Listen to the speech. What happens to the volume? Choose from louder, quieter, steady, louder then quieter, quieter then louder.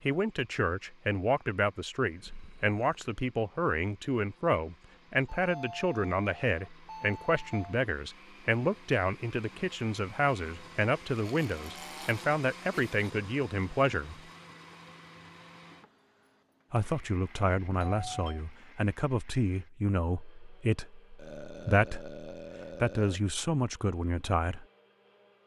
steady.